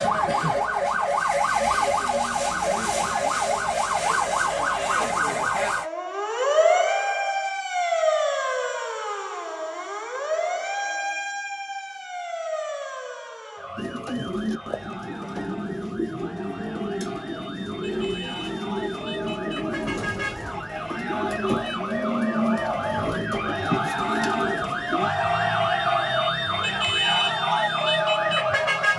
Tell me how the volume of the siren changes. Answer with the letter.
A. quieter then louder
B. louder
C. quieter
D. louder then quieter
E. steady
A.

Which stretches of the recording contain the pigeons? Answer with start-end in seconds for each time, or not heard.
13.8-25.1.